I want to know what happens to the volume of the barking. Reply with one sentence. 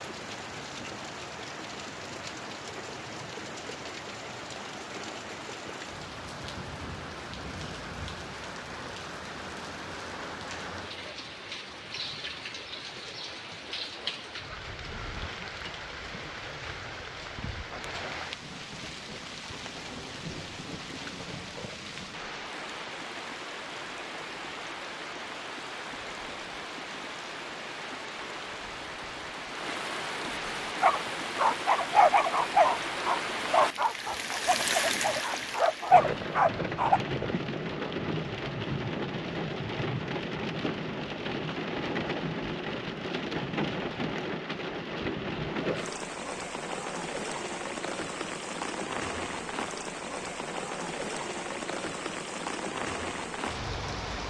The volume of the barking goes down, then up.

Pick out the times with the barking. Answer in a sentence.
You can hear the barking from 30.8 to 37.0 s.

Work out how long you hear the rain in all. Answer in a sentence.
The rain can be heard for 54 seconds in total.